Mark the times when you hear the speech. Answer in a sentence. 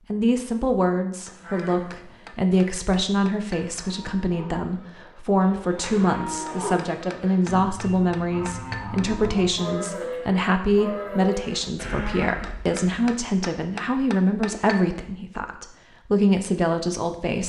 The speech can be heard from 0.1 to 17.4 s.